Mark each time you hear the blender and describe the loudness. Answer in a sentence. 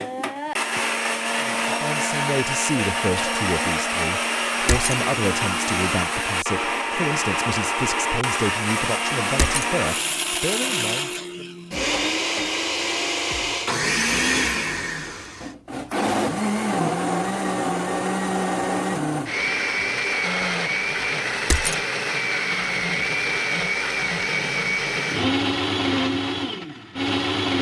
You can hear the blender from 0.0 to 27.5 s, at a steady volume.